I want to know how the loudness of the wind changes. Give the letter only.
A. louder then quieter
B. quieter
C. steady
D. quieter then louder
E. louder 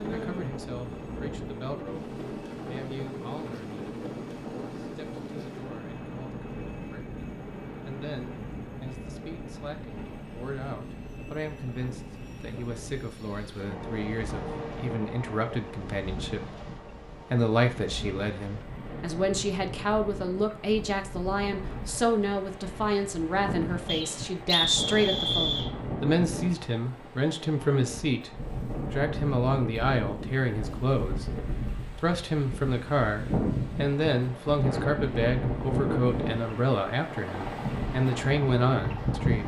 E.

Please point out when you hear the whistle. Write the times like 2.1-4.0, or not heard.
23.9-25.7.